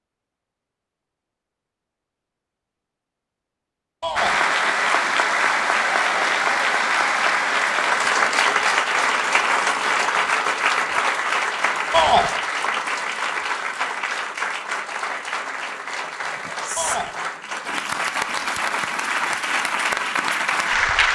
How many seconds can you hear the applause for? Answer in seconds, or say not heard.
17 s.